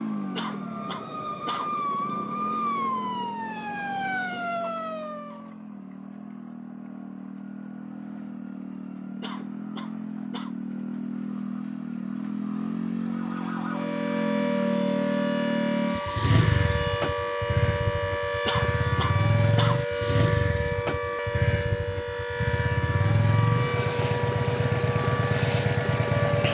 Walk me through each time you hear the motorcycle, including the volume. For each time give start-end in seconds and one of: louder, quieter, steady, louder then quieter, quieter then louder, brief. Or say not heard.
0.0-26.4 louder.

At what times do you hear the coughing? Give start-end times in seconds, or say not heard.
0.3-1.8, 9.2-10.6, 18.4-19.9.